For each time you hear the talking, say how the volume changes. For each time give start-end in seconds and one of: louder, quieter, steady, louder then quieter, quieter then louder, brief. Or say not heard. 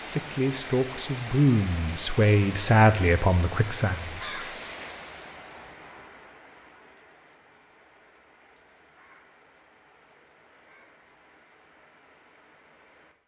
0.0-4.4 louder then quieter.